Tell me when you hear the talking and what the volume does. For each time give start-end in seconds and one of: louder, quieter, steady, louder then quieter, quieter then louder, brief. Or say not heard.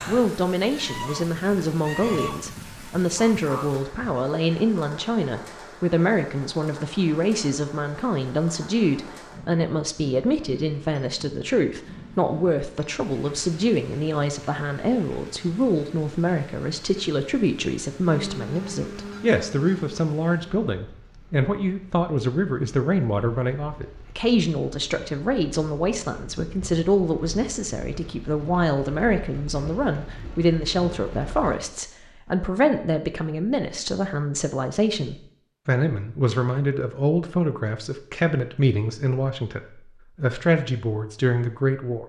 0.1-42.0 steady.